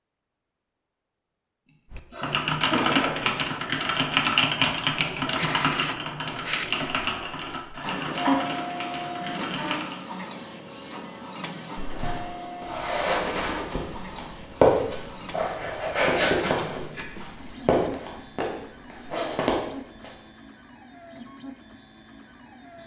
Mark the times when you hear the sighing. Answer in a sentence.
The sighing can't be heard in this clip.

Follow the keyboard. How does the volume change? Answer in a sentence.
The volume of the keyboard goes down.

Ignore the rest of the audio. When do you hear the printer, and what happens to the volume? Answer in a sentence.
The printer can be heard from 4.8 to 22.8 s, getting quieter.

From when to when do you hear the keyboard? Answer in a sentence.
You can hear the keyboard from 1.9 to 9.9 s.